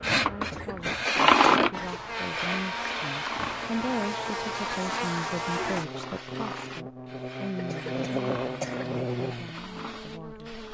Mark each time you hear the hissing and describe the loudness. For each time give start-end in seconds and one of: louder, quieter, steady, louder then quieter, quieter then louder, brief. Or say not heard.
0.0-10.6 quieter.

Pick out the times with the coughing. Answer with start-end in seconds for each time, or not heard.
0.4-2.0, 7.5-8.8.